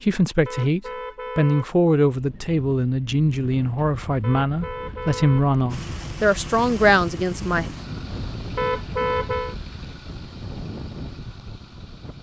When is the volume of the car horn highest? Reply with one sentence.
The loudest moment of the car horn is at 9 seconds.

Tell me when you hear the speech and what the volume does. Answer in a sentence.
You can hear the speech from 0.0 to 7.7 s, at a steady volume.